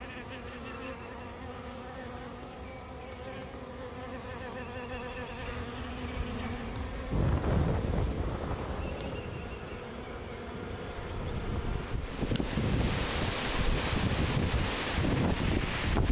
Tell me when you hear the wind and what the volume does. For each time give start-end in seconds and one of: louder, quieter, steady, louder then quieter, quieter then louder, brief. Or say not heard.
7.1-16.0 quieter then louder.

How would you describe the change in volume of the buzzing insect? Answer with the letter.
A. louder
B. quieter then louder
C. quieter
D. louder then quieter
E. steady
E.